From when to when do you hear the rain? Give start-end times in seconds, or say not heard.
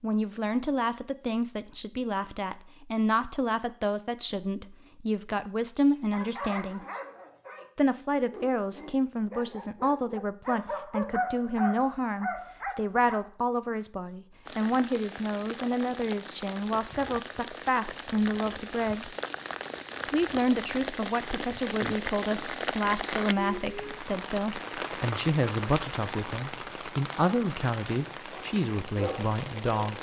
14.4-29.9.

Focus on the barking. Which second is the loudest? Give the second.
11 s.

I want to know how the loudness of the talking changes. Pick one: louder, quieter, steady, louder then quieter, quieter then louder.
steady.